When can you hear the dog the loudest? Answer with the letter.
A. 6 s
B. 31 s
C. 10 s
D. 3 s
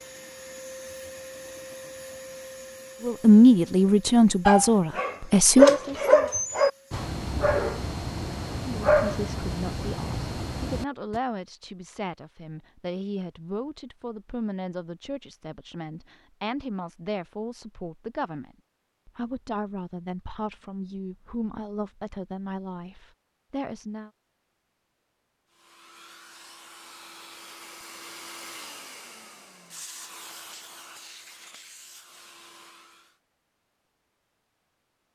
A.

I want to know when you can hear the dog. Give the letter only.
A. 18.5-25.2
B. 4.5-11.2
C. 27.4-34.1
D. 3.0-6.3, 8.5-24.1
B.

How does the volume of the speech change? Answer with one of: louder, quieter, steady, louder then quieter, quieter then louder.
quieter.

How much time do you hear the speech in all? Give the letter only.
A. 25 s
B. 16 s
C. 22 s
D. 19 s
D.